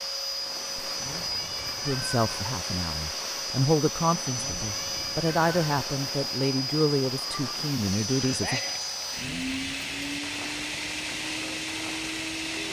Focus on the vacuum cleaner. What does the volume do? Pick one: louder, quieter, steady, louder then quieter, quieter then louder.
steady.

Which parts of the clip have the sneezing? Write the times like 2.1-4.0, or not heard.
8.1-8.9.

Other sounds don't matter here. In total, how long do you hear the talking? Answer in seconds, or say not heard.
7 s.